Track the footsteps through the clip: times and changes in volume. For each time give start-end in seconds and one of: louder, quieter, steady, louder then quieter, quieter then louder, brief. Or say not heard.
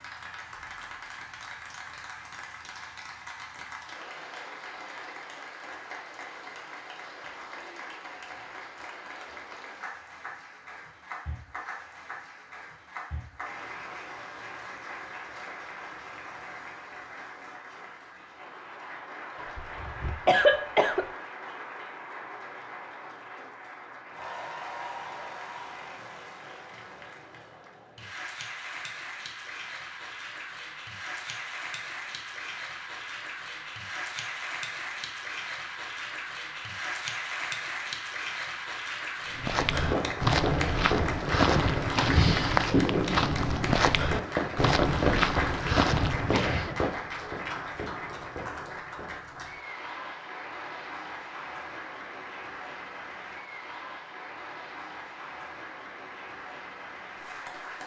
39.4-46.7 steady.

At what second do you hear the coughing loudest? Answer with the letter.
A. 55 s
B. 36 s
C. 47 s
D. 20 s
D.